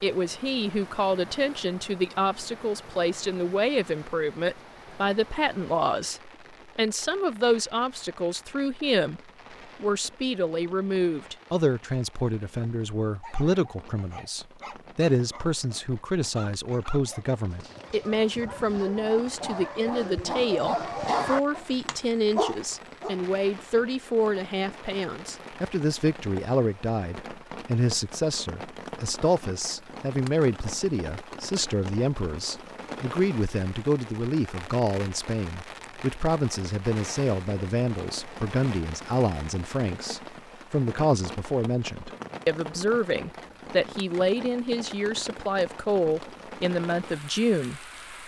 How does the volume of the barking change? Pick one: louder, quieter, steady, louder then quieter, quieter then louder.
louder.